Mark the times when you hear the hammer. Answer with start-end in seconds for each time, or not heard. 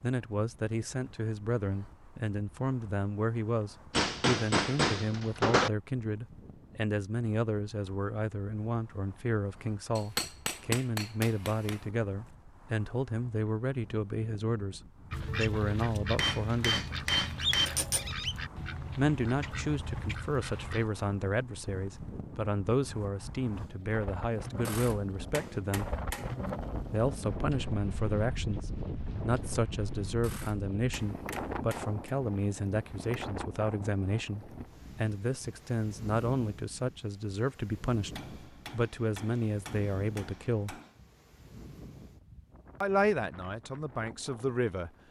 3.9-5.7, 9.9-11.8, 16.1-18.1, 24.6-26.4, 30.2-32.1, 38.1-41.0.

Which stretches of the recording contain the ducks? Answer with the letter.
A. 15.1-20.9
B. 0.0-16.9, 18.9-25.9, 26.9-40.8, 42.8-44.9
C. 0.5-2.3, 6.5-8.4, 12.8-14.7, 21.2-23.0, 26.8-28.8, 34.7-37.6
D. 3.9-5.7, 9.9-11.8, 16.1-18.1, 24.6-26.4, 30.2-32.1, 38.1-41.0
A.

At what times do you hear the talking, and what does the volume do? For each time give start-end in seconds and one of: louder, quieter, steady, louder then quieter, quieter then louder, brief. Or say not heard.
0.0-16.9 steady
18.9-25.9 steady
26.9-40.8 steady
42.8-44.9 brief.